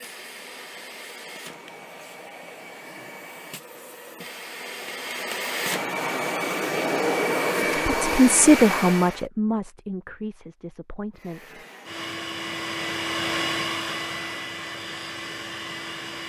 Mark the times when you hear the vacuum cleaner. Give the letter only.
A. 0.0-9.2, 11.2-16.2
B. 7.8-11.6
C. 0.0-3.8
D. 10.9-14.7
A.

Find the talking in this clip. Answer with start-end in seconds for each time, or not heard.
7.8-11.6.